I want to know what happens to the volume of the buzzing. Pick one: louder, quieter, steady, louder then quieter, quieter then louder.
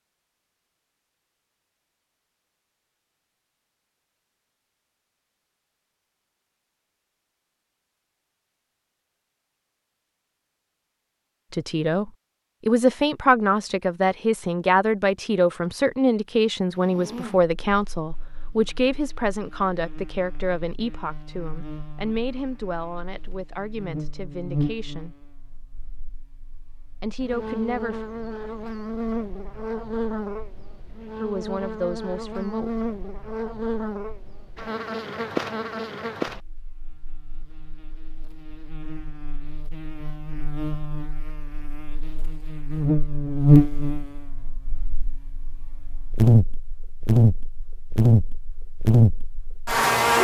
louder.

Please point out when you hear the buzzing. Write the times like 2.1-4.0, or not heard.
16.7-50.1.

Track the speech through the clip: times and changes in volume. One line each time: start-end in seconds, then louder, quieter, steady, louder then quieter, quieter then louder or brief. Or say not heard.
11.5-25.2 quieter
27.0-28.0 brief
31.2-32.7 brief.